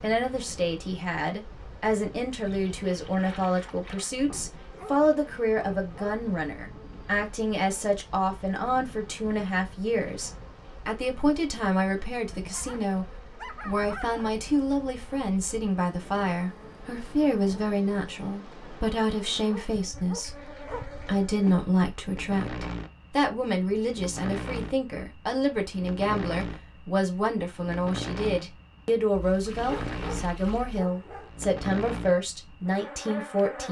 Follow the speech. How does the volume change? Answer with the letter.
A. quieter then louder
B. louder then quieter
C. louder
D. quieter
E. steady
E.